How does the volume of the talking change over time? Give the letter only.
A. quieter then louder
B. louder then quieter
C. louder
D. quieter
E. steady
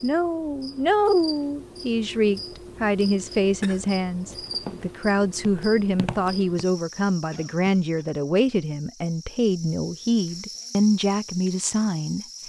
E.